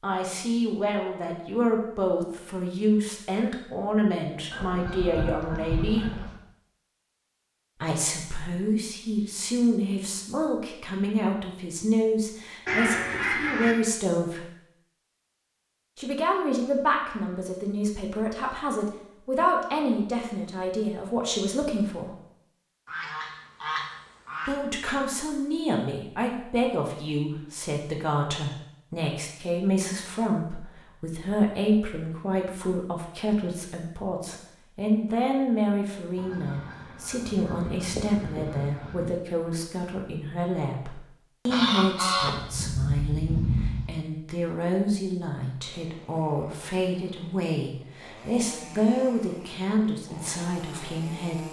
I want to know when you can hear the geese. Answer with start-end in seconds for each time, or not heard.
4.5-6.3, 12.7-13.8, 22.9-24.6, 36.1-39.1, 41.5-43.9.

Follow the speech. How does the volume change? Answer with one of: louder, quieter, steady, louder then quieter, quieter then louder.
steady.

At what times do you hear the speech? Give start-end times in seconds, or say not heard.
0.0-6.1, 7.8-14.4, 15.9-22.1, 24.4-51.4.